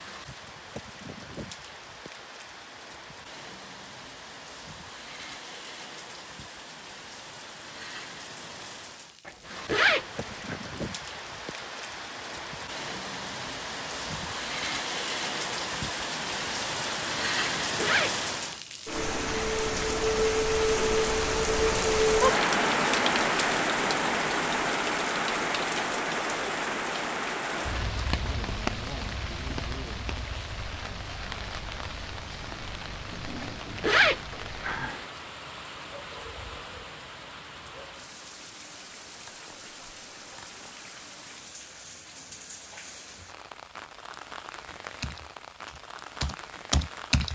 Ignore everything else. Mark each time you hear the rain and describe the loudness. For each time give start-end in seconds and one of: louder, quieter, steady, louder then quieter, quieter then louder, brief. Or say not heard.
0.0-47.3 louder then quieter.